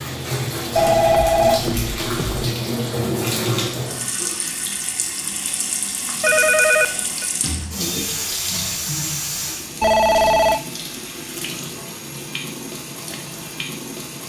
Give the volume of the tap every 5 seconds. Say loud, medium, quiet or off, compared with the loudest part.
loud, loud, medium.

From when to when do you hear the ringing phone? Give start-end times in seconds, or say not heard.
0.8-2.5, 6.2-7.2, 9.8-10.6.